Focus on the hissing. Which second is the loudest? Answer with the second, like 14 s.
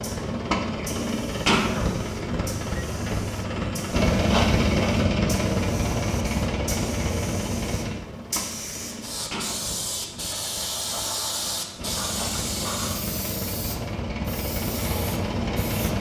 11 s.